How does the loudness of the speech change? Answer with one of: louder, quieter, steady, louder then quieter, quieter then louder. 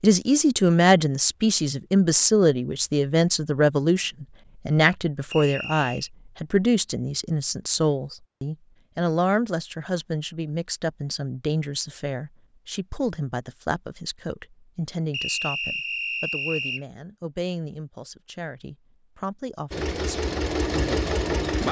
quieter.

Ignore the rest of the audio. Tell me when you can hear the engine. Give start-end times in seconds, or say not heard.
19.7-21.6.